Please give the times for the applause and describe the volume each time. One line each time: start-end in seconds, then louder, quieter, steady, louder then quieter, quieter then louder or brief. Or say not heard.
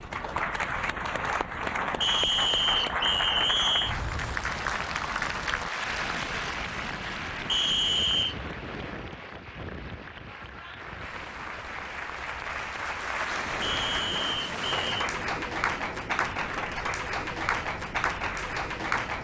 0.0-19.2 quieter then louder.